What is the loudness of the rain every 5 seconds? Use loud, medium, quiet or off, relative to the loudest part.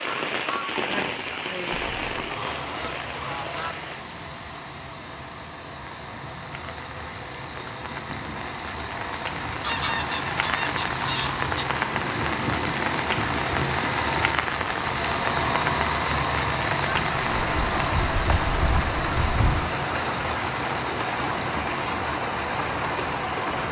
loud, medium, loud, loud, loud.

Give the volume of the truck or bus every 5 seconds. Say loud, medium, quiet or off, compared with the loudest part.
medium, medium, loud, loud, medium.